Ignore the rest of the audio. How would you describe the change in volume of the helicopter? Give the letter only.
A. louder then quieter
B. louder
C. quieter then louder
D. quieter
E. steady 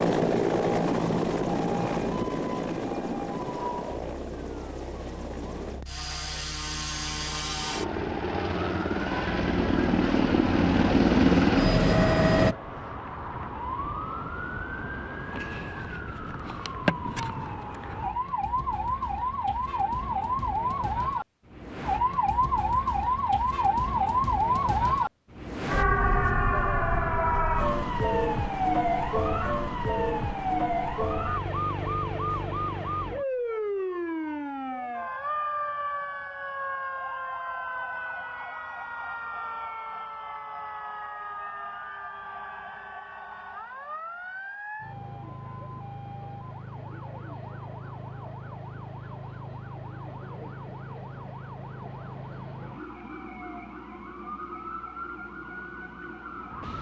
C.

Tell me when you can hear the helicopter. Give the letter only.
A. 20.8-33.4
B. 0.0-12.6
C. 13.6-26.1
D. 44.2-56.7
B.